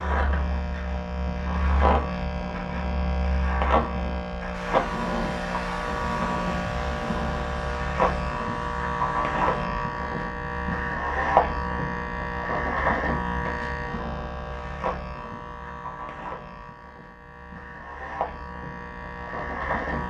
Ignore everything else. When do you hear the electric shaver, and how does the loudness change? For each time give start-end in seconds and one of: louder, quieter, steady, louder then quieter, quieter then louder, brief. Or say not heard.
0.0-20.0 quieter.